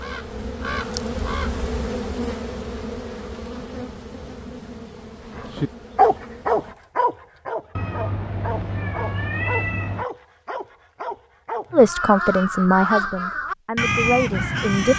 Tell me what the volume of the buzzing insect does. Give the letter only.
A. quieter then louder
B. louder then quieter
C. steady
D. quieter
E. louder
D.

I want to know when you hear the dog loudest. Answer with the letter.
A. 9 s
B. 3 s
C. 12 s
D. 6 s
D.